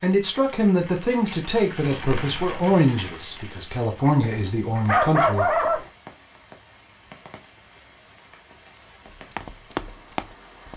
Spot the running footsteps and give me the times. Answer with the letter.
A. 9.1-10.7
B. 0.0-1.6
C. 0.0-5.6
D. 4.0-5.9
A.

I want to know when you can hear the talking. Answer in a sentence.
The talking can be heard from 0.0 to 5.6 s.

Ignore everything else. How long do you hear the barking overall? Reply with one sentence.
You can hear the barking for 2 seconds altogether.